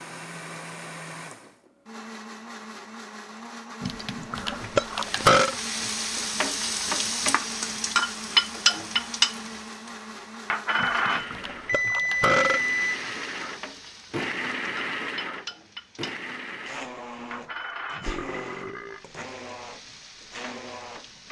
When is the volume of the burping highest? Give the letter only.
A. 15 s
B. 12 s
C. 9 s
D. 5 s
D.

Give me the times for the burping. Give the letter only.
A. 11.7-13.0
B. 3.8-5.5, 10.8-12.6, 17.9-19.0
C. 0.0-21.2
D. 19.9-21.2
B.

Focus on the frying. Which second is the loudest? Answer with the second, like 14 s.
9 s.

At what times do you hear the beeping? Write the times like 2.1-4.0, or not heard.
11.7-13.0.